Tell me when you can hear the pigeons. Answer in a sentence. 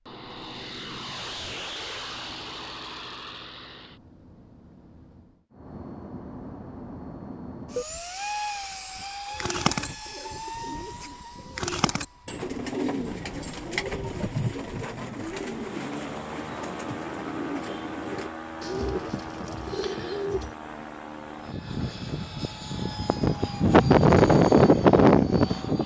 You can hear the pigeons from 9.3 to 20.6 s.